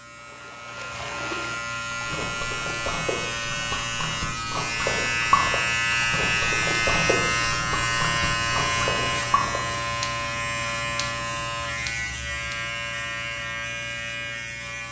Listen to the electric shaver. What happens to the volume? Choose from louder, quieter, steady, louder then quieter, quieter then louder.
louder then quieter.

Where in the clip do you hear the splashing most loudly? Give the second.
5 s.